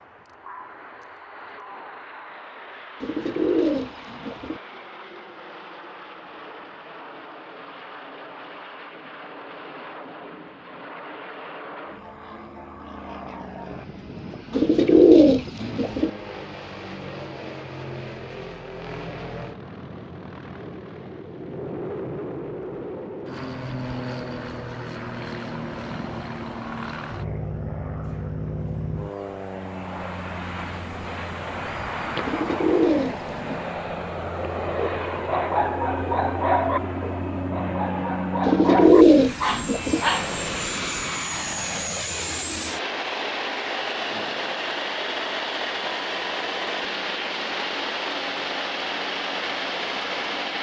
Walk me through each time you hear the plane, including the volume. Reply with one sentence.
The plane can be heard from 0.0 to 50.5 s, getting louder.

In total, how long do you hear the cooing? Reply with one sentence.
The cooing can be heard for 6 seconds in total.